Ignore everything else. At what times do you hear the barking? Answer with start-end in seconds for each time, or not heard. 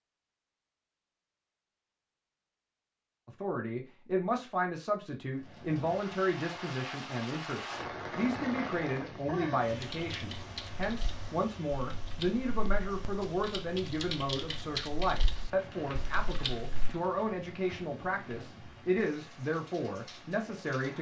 not heard.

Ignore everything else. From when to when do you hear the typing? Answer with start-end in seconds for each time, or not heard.
9.8-16.9.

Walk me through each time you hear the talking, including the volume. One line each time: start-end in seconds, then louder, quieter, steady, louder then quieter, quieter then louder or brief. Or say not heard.
3.2-20.9 steady.